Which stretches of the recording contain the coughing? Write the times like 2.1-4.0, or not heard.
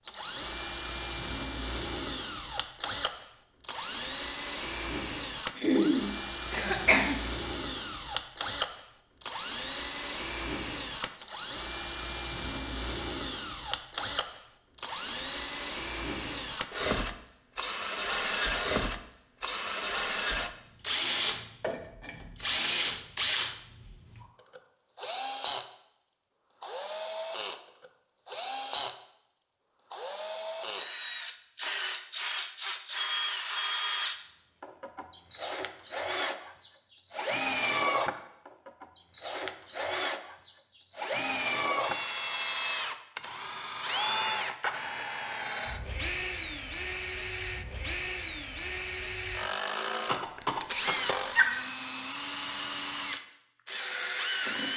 5.5-7.2, 50.0-51.5.